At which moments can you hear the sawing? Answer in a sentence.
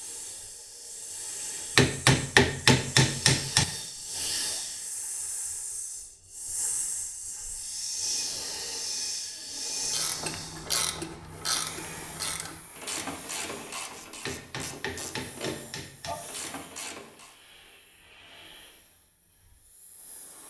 The sawing can't be heard in this clip.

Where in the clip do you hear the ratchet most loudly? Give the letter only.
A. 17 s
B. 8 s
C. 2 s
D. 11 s
D.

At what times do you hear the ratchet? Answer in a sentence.
You can hear the ratchet from 9.9 to 17.4 s.